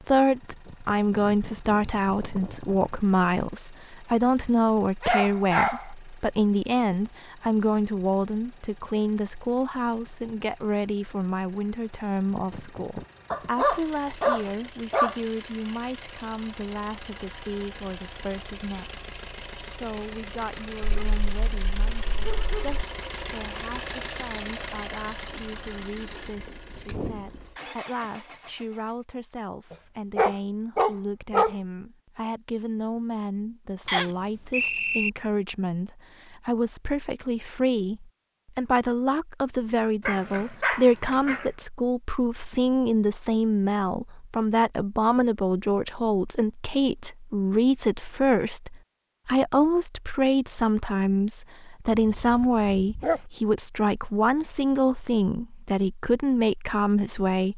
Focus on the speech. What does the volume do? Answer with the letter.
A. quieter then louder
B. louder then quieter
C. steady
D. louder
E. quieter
A.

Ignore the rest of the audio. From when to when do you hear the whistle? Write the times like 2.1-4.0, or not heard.
33.9-35.1.